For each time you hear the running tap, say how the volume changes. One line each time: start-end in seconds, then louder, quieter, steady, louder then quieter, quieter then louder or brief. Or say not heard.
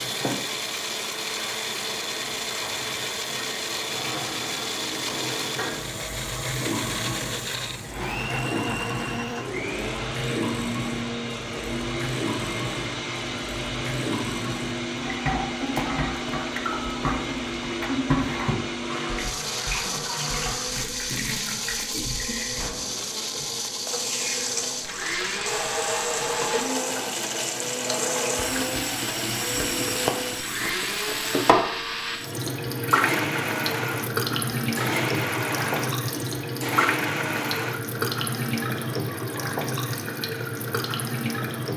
0.0-41.7 louder.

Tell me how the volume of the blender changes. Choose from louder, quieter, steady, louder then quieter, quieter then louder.
steady.